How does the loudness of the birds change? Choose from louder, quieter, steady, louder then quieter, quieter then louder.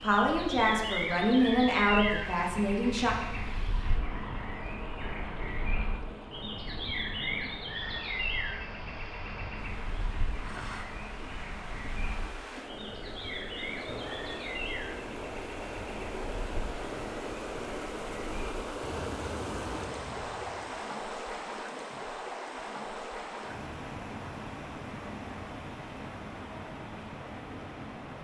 quieter.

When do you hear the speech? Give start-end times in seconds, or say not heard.
0.0-3.1.